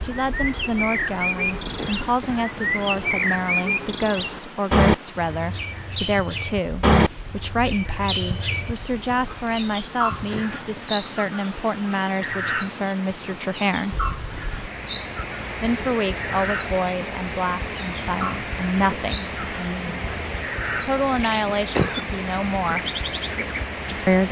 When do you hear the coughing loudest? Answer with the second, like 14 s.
22 s.